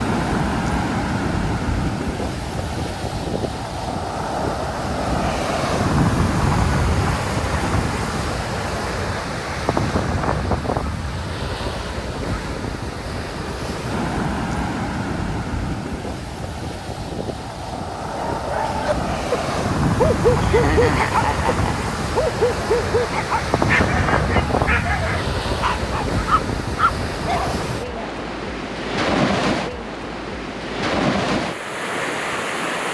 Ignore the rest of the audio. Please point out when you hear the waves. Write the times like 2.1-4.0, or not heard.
0.0-32.8.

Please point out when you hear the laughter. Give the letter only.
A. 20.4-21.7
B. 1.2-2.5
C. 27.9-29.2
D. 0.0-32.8
A.